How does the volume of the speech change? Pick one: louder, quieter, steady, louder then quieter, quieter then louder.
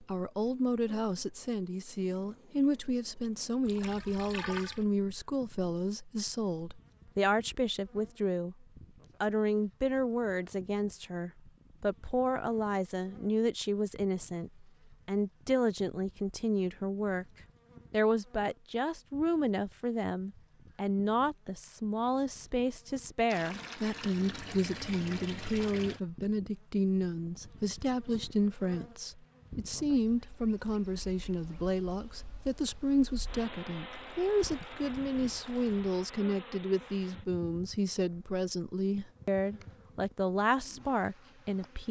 steady.